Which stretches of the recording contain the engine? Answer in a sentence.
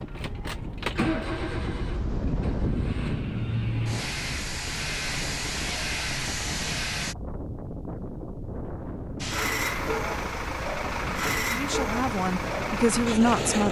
You can hear the engine from 0.0 to 7.2 s and from 9.2 to 13.6 s.